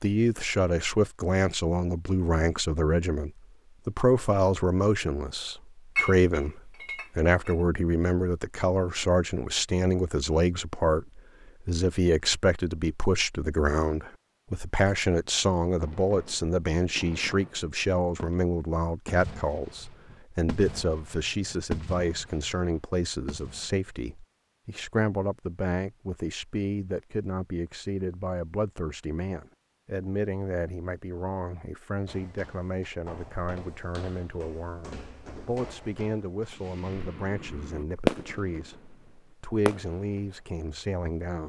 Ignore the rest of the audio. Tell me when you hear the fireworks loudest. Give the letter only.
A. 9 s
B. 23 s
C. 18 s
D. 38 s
D.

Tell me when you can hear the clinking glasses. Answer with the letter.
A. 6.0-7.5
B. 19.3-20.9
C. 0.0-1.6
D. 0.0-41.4
A.